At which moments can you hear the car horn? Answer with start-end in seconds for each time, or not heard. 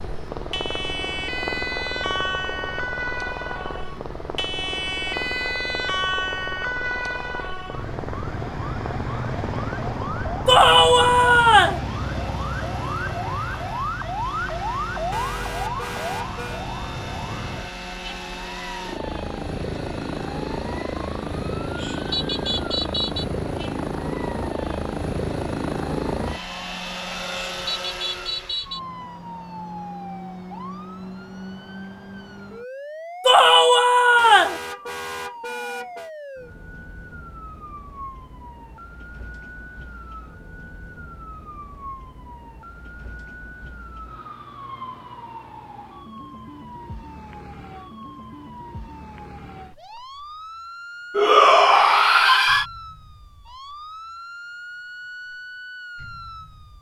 15.1-16.6, 34.1-36.1.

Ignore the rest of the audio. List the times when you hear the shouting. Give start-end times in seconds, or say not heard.
10.4-11.8, 33.2-34.6, 51.1-52.6.